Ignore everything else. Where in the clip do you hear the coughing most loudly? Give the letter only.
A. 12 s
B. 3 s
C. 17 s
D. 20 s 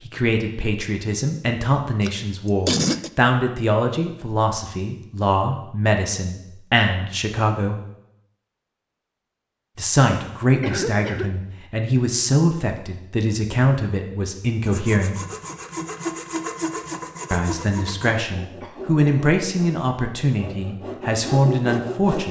B.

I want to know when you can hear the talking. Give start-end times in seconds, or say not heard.
0.1-7.8, 9.8-15.2, 17.3-22.2.